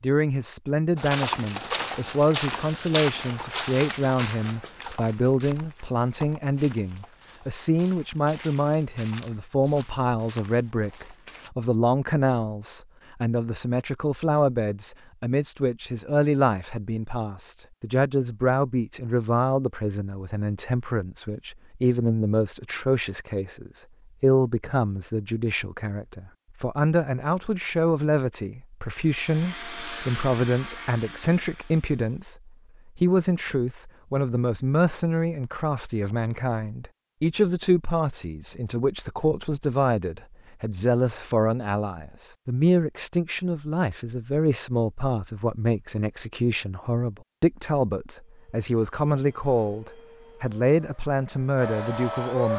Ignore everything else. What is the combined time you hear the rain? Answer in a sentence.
The rain can't be heard in this clip.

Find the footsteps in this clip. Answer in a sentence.
You can hear the footsteps from 0.9 to 11.5 s.